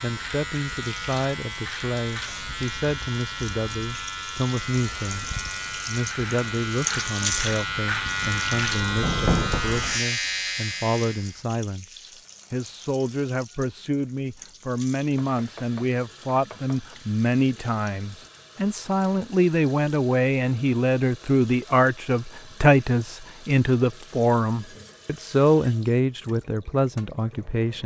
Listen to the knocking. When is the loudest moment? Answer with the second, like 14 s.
9 s.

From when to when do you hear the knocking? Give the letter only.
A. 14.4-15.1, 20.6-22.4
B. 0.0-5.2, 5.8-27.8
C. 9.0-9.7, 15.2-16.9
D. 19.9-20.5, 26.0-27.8
C.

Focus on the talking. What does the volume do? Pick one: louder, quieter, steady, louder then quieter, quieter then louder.
louder.